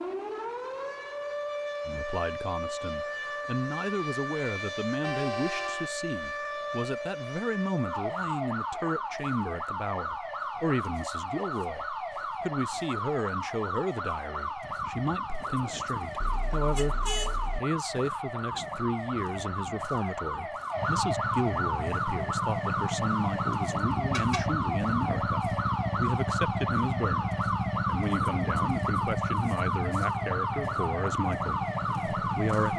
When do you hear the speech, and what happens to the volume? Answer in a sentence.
The speech can be heard from 1.9 to 16.9 s, at a steady volume; and from 17.6 to 32.7 s, at a steady volume.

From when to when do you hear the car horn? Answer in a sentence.
You can hear the car horn from 5.0 to 5.9 s, from 16.2 to 17.6 s and from 24.1 to 24.6 s.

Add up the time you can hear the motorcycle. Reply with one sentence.
The motorcycle can be heard for 12 seconds in total.